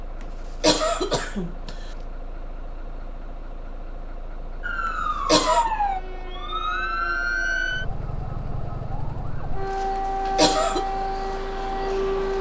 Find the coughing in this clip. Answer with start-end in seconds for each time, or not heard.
0.6-1.8, 5.2-5.7, 10.3-10.8.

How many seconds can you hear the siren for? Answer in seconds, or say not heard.
8 s.